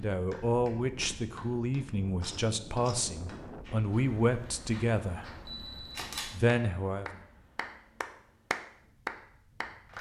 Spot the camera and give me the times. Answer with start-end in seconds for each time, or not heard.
2.2-3.1, 5.5-6.3.